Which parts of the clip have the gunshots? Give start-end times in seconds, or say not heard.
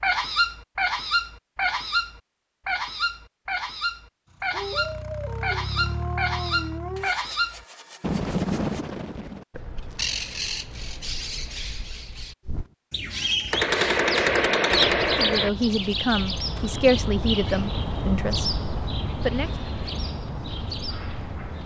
13.5-15.5.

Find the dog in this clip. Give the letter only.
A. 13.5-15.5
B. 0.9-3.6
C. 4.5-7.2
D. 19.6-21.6
C.